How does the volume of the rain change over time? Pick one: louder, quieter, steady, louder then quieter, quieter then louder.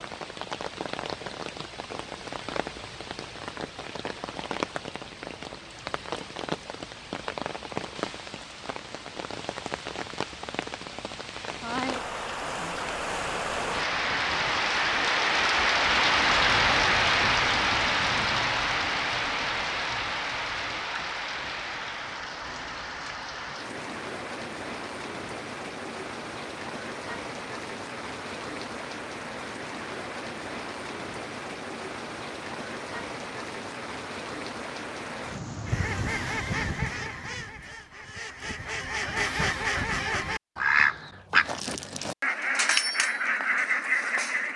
louder then quieter.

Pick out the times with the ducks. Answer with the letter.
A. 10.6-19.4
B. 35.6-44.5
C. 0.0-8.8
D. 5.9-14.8
B.